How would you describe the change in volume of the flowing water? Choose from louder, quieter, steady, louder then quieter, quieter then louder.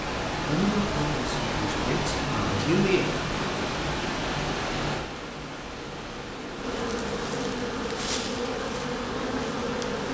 quieter.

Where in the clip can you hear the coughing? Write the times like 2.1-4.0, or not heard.
not heard.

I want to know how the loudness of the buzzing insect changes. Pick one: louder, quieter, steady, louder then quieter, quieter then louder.
louder.